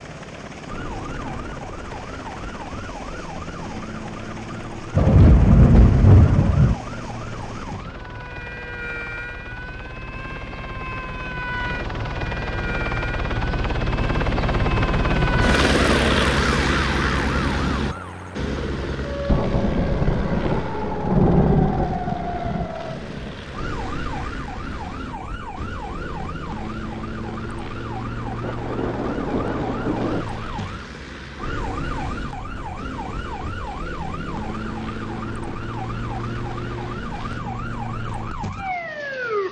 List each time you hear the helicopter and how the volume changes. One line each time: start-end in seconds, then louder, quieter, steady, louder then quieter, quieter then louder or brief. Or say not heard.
0.0-37.5 louder then quieter.